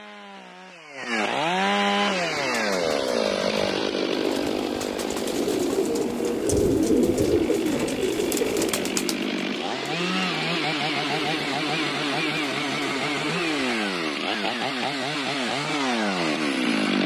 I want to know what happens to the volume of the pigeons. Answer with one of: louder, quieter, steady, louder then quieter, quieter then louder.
louder then quieter.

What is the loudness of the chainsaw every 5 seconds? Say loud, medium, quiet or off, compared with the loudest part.
loud, medium, loud, loud.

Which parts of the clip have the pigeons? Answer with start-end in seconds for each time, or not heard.
1.9-13.7.